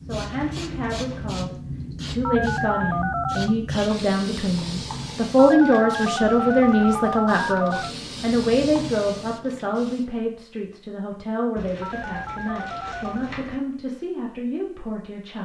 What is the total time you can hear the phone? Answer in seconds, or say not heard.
5 s.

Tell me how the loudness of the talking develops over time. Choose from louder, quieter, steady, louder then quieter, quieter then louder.
louder then quieter.